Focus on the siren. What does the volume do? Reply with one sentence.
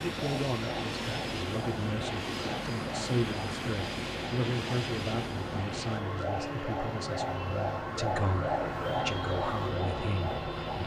The volume of the siren goes up.